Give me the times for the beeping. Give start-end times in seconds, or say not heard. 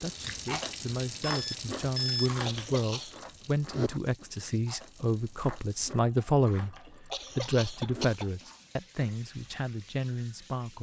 1.2-2.3.